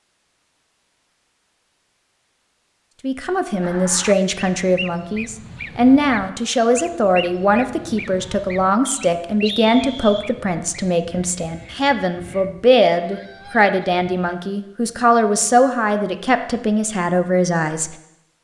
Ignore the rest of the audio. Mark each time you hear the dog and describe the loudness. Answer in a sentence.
You can't hear the dog here.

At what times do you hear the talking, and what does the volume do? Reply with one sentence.
The talking can be heard from 3.0 to 17.9 s, at a steady volume.